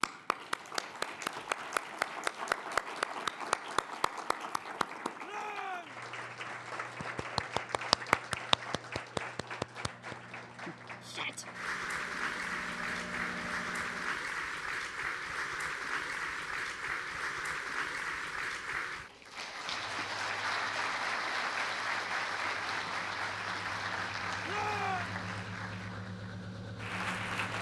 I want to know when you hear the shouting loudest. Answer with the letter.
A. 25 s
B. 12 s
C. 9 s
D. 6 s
A.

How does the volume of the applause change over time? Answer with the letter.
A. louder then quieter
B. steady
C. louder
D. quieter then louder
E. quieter
B.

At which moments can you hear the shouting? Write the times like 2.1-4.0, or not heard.
5.2-6.0, 11.0-11.4, 24.4-25.1.